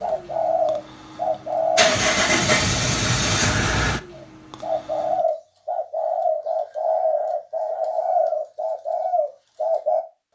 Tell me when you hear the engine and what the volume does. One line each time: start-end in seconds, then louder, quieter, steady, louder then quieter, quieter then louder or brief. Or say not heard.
0.0-5.2 louder then quieter.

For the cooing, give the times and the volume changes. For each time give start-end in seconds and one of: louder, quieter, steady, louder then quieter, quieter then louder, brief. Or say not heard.
0.0-1.9 brief
4.2-10.3 steady.